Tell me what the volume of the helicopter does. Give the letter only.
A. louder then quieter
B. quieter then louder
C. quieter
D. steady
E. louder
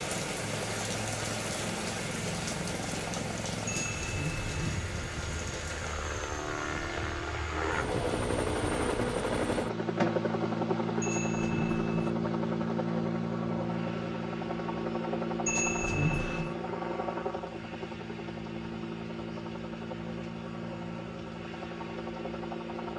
A.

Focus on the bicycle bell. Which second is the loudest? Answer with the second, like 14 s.
16 s.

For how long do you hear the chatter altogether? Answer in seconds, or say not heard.
not heard.